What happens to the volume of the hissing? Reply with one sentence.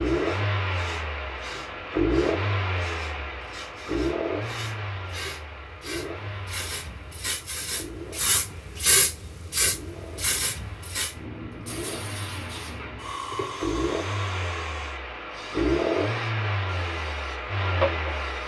The loudness of the hissing goes up, then down.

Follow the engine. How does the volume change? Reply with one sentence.
The loudness of the engine goes down, then up.